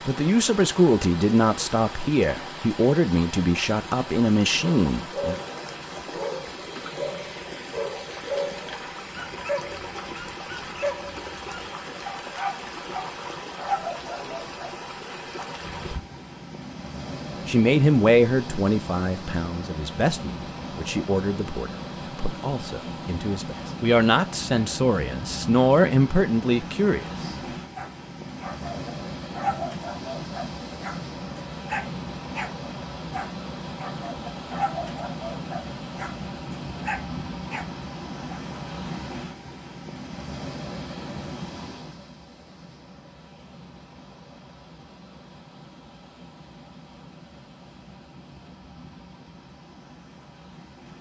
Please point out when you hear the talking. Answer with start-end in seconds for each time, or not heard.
0.1-5.3, 17.4-27.4.